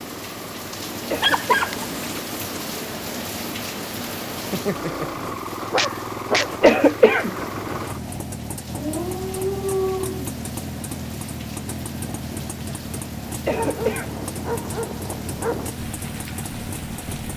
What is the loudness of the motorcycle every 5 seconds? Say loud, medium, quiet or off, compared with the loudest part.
medium, loud, loud, loud.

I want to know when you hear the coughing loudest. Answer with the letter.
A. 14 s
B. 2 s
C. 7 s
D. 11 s
C.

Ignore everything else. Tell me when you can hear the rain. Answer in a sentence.
You can hear the rain from 0.0 to 17.3 s.